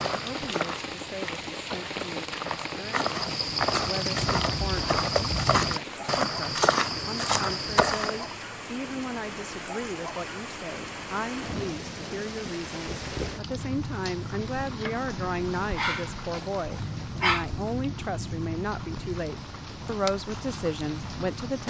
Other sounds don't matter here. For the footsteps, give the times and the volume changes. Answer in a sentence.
The footsteps can be heard from 0.0 to 8.4 s, getting louder.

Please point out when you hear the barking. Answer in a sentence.
You can hear the barking from 15.8 to 17.4 s.